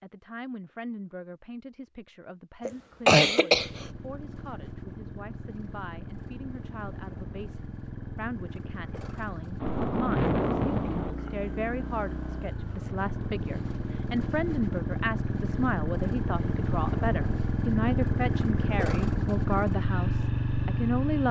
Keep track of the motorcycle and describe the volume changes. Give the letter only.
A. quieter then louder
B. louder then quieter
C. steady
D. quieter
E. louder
E.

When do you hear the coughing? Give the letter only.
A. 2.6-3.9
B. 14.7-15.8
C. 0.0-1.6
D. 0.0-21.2
A.